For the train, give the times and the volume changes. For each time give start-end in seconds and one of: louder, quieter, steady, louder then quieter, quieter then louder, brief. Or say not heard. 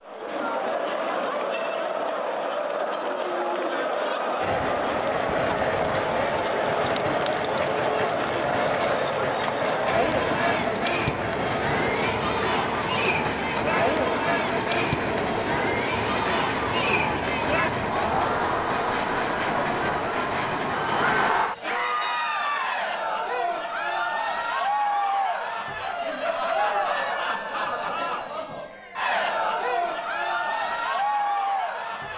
4.4-21.3 steady.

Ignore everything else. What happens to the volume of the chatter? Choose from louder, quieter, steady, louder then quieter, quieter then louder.
steady.